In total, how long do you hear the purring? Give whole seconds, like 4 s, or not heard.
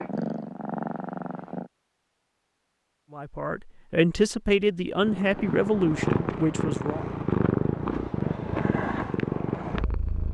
7 s.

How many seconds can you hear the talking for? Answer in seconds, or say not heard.
4 s.